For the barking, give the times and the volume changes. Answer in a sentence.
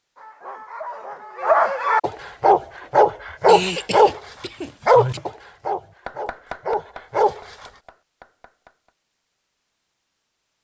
You can hear the barking from 0.1 to 4.2 s, getting louder; and briefly from 4.8 to 7.4 s.